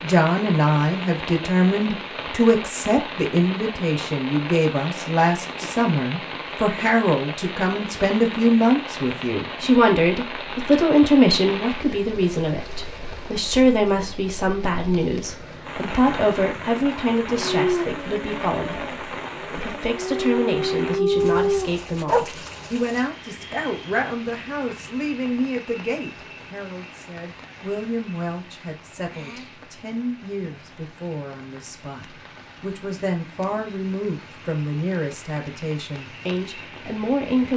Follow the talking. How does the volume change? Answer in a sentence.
The loudness of the talking goes down.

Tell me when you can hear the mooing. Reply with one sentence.
You can't hear the mooing here.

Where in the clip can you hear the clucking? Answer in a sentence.
The clucking can't be heard in this clip.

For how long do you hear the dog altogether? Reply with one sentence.
The dog can be heard for 5 seconds in total.